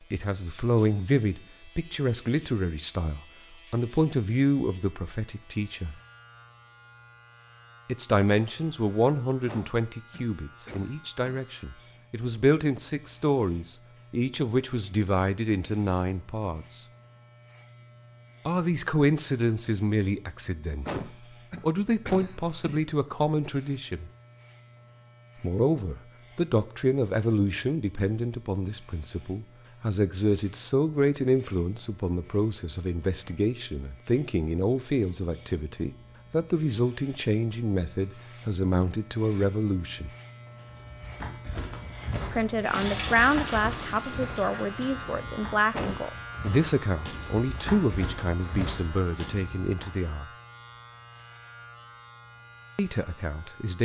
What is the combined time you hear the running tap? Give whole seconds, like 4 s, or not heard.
3 s.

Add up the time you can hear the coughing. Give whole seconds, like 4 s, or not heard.
5 s.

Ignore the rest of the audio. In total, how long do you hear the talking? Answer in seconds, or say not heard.
44 s.